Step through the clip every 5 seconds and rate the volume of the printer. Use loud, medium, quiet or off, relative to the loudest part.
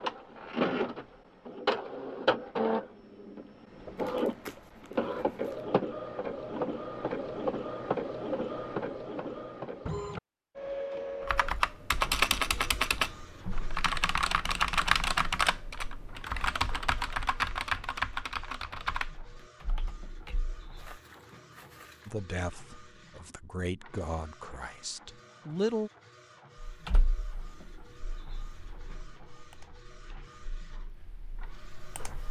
loud, loud, medium, quiet, quiet, quiet, quiet.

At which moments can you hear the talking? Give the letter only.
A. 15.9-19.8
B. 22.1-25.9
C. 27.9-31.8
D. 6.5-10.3
B.